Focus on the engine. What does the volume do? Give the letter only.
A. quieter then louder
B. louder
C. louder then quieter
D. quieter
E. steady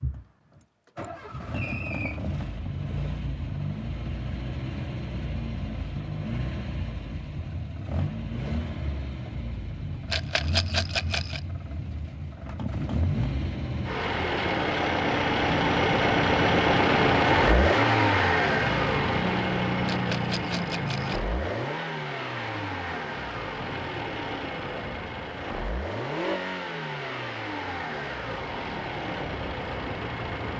C.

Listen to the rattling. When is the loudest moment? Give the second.
11 s.